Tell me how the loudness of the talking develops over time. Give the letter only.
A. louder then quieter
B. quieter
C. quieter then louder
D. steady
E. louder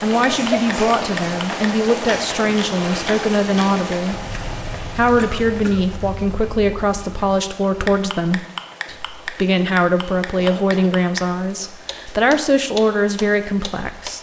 D.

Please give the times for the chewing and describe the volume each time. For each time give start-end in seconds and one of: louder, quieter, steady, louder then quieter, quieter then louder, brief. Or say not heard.
not heard.